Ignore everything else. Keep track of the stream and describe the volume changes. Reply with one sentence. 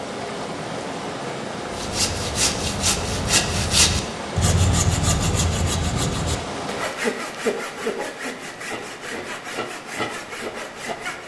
The loudness of the stream goes down.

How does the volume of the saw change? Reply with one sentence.
The loudness of the saw goes down.